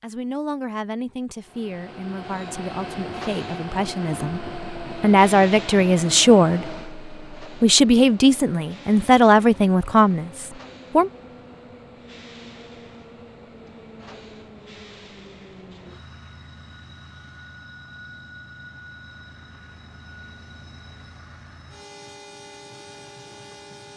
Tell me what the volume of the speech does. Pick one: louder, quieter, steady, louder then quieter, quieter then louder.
louder.